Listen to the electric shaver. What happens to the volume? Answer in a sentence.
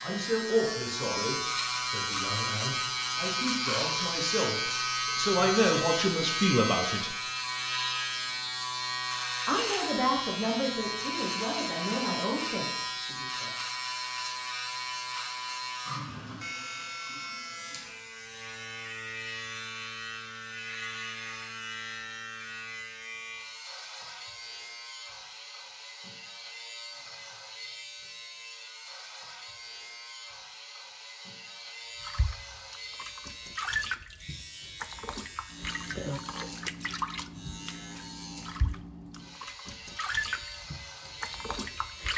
The volume of the electric shaver goes down.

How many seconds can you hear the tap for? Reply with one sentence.
You can hear the tap for 10 seconds altogether.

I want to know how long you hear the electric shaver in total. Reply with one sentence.
You can hear the electric shaver for 42 seconds altogether.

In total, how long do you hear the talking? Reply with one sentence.
The talking can be heard for 11 seconds in total.